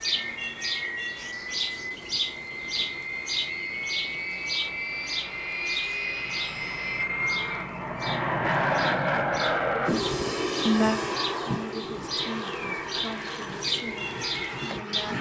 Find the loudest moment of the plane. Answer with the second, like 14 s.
9 s.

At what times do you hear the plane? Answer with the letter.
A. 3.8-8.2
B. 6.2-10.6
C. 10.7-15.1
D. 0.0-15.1
D.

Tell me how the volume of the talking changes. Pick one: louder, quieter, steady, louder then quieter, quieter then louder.
quieter.